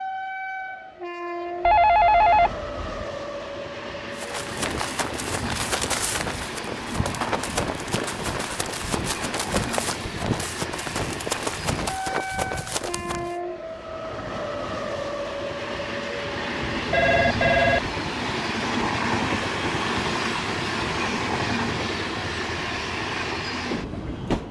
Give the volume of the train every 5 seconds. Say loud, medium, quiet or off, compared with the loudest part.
medium, medium, medium, loud, loud.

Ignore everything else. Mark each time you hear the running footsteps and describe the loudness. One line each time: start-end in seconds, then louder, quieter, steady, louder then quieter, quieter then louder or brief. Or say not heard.
4.2-13.3 steady.